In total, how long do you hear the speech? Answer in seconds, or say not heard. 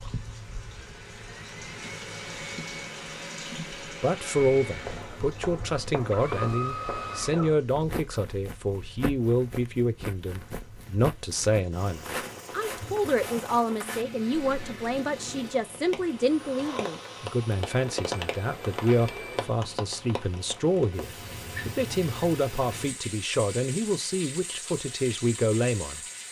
22 s.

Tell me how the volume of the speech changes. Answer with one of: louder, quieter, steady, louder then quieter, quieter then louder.
steady.